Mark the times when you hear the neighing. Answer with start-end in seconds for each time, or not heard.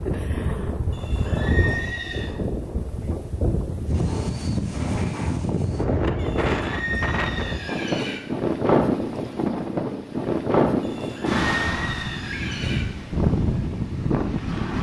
0.9-2.4, 6.2-8.2, 10.8-12.8.